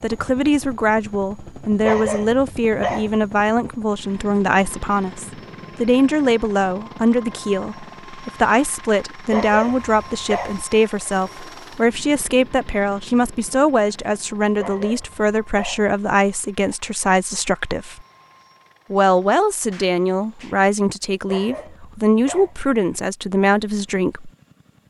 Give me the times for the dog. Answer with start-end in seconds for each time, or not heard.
1.8-3.1, 9.3-10.7, 14.6-15.9, 21.2-22.6.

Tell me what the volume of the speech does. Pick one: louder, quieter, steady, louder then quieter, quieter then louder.
steady.